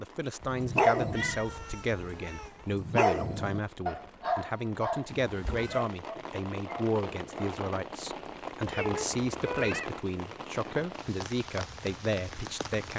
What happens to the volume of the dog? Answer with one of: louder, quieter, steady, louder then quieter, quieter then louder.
quieter.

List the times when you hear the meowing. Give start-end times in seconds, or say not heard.
0.9-2.6, 5.2-5.8, 8.6-9.9.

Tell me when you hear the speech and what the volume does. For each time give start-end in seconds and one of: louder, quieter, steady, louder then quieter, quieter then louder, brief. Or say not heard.
0.0-12.9 steady.